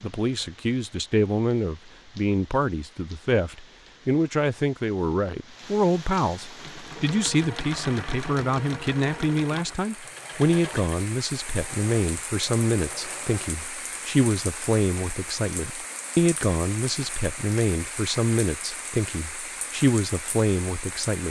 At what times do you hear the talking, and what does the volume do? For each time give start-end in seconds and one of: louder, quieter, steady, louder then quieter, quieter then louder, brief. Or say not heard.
0.0-21.2 steady.